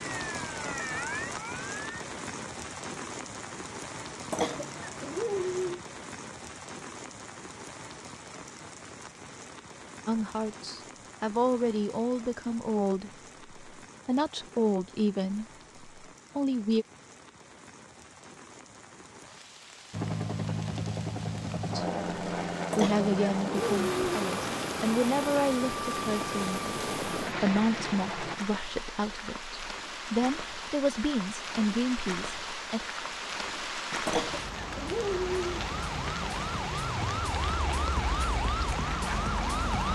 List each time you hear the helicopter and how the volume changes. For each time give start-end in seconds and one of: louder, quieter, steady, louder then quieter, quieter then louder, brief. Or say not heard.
19.9-28.4 steady.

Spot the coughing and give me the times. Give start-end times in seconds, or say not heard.
4.3-5.8, 22.7-24.2, 34.0-35.6.